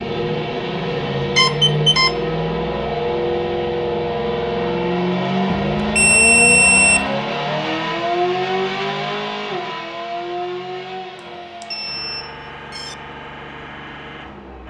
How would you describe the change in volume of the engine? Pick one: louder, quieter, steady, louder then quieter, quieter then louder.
quieter.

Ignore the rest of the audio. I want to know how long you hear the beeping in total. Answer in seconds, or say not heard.
4 s.